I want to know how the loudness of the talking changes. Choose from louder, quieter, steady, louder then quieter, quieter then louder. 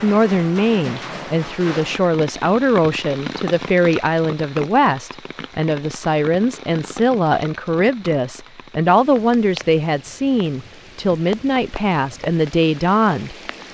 steady.